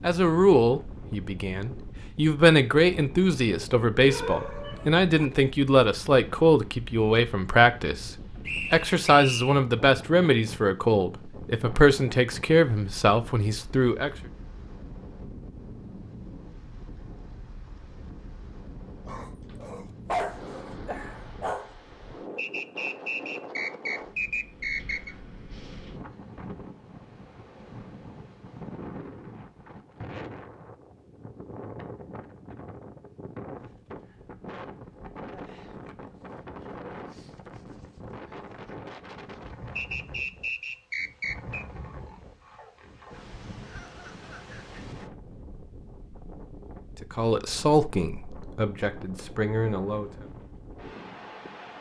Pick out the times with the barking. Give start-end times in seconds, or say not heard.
4.0-5.3, 19.1-21.8, 41.8-43.2.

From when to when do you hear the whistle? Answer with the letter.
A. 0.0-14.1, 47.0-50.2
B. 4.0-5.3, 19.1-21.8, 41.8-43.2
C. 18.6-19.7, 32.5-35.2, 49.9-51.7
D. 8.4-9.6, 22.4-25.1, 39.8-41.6
D.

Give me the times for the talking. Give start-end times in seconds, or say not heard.
0.0-14.1, 47.0-50.2.